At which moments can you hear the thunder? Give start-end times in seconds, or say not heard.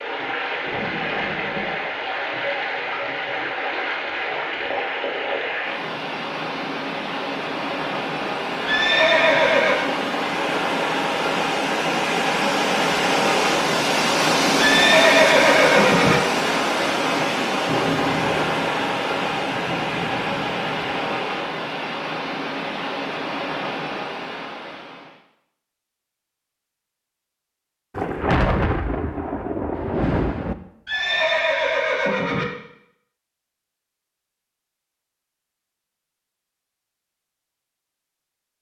0.7-1.8, 17.6-21.2, 27.9-30.6.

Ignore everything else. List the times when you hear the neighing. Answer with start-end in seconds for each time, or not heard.
8.7-9.9, 14.6-16.2, 30.9-32.5.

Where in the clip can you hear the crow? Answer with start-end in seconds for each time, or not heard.
not heard.